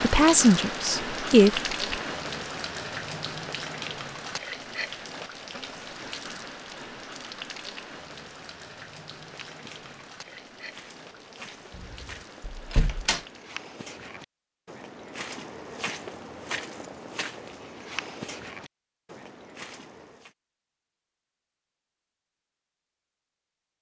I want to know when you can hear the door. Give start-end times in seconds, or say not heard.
11.8-13.2.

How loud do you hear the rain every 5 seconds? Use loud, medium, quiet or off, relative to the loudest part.
loud, medium, quiet, off, off.